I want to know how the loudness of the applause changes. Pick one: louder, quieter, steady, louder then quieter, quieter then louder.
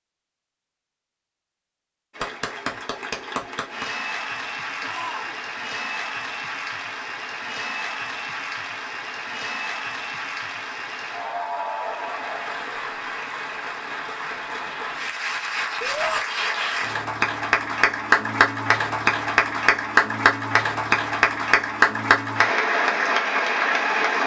louder.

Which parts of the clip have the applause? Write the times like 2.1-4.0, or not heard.
2.1-24.2.